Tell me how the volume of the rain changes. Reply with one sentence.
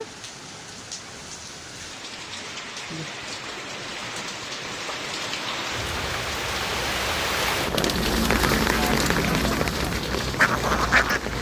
The loudness of the rain goes up.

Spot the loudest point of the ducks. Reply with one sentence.
The loudest moment of the ducks is at 11 seconds.